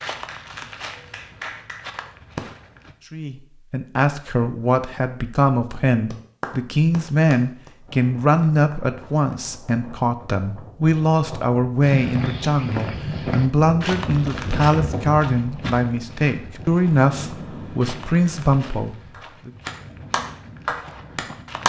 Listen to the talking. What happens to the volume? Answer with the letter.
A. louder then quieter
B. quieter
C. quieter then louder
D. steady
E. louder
D.